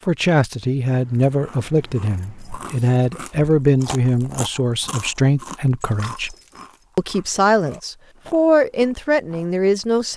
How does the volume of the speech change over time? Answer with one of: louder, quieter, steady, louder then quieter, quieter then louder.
steady.